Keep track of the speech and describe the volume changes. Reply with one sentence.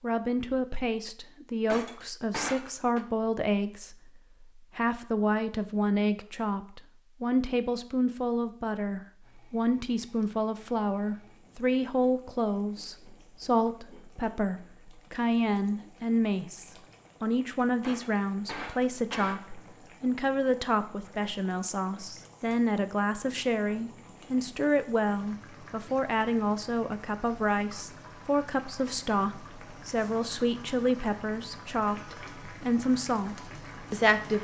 The loudness of the speech stays about the same.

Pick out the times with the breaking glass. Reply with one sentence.
The breaking glass can be heard from 1.6 to 3.0 s and from 17.8 to 19.4 s.